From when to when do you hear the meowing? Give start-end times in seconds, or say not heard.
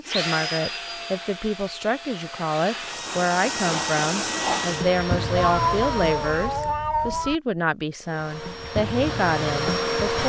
5.3-7.3.